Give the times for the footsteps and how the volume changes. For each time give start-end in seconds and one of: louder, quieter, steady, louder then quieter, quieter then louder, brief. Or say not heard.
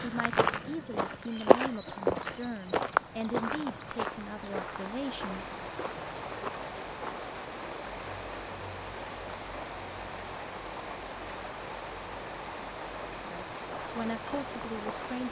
0.0-7.2 quieter
13.7-15.2 brief.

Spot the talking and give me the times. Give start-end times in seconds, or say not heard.
0.0-5.5, 13.3-15.2.